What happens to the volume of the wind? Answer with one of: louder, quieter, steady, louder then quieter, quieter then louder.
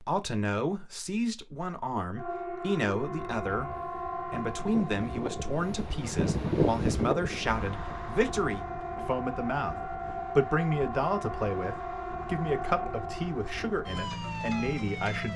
louder then quieter.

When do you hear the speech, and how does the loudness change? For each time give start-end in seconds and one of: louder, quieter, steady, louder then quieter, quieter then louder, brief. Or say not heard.
0.0-15.3 steady.